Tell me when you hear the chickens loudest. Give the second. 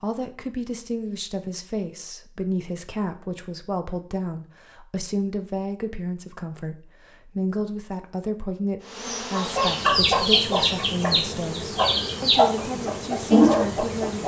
13 s.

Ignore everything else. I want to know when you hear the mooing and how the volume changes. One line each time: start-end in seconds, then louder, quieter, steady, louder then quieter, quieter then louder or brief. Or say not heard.
not heard.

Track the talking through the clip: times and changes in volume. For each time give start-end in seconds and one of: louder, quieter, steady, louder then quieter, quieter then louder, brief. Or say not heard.
0.0-14.2 steady.